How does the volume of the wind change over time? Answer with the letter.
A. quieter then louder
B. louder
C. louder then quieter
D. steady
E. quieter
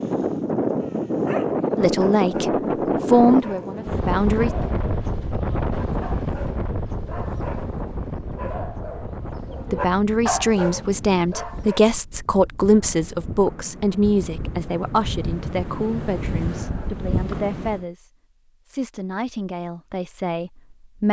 A.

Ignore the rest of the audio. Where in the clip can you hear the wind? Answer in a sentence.
The wind can be heard from 0.0 to 17.9 s.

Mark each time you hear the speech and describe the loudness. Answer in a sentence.
The speech can be heard briefly from 1.8 to 4.5 s; and from 9.7 to 21.0 s, getting quieter.